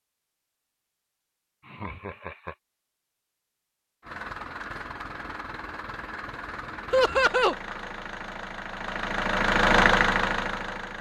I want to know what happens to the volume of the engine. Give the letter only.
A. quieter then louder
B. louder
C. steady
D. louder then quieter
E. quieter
B.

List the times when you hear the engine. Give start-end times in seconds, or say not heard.
4.0-10.9.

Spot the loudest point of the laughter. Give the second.
7 s.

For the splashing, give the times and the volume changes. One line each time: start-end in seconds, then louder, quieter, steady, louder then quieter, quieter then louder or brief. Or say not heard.
not heard.